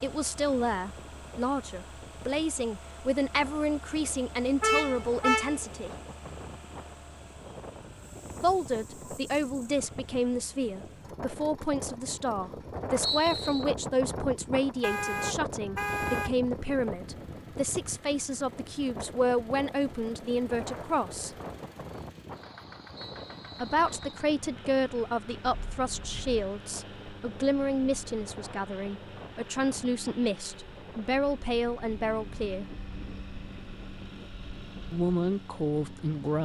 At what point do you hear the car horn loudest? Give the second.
5 s.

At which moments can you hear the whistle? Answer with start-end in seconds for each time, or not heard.
13.0-13.7, 22.9-24.2.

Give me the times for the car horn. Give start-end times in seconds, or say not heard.
4.6-5.6, 14.8-16.3, 25.4-26.5.